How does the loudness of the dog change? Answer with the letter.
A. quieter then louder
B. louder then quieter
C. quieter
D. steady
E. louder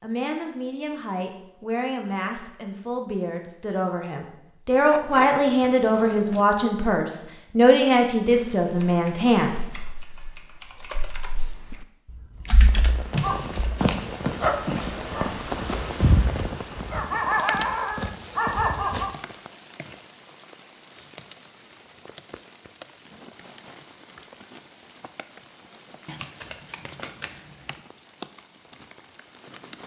A.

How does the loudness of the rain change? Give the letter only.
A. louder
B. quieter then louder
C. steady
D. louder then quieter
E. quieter
E.